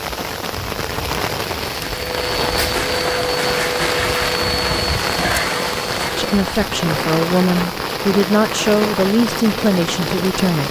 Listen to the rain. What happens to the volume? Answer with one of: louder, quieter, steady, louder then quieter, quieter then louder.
steady.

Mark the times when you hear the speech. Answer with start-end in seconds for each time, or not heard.
6.2-10.6.